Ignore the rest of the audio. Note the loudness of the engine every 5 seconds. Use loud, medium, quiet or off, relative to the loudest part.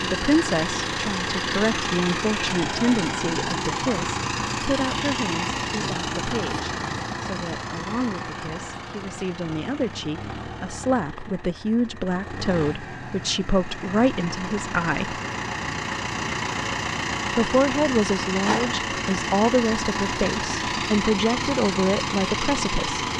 loud, loud, medium, loud, loud.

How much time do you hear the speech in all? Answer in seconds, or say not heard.
21 s.